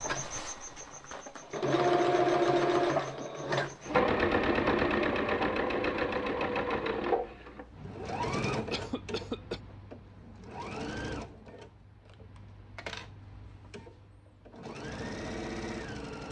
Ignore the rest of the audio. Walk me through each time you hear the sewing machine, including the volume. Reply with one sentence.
The sewing machine can be heard from 0.0 to 16.2 s, getting quieter.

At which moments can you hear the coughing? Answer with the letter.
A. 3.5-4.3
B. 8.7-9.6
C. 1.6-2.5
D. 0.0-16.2
B.